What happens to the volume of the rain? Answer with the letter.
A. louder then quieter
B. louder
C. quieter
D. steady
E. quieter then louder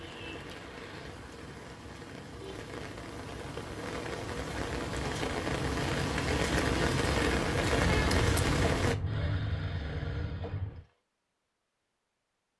B.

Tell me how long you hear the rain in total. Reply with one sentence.
You can hear the rain for 9 seconds altogether.